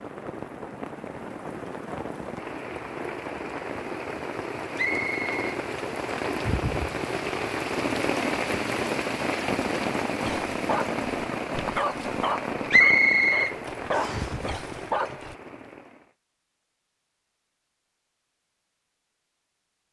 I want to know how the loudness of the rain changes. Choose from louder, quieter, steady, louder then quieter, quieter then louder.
louder then quieter.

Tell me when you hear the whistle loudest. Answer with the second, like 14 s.
13 s.